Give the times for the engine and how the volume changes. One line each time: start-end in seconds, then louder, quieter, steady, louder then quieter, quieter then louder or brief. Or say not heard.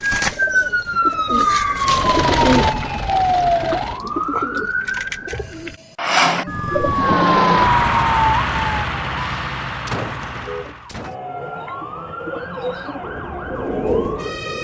1.8-4.3 brief
6.8-11.0 quieter.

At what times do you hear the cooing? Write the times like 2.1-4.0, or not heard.
0.0-7.3, 11.2-14.5.